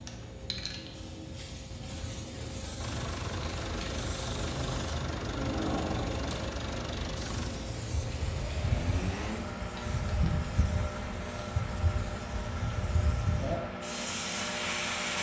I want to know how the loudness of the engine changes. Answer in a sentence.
The volume of the engine stays about the same.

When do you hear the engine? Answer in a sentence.
You can hear the engine from 2.8 to 15.1 s.